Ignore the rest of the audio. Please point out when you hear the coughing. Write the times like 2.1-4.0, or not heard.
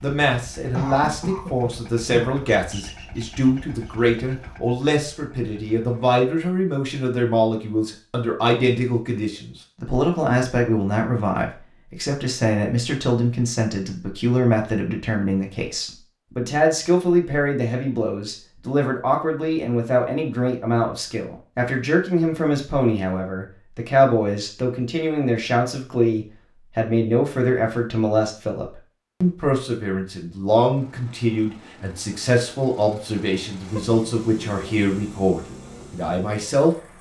0.7-2.3.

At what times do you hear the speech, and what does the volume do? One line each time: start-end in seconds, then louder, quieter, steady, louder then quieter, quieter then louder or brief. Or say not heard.
0.0-36.8 steady.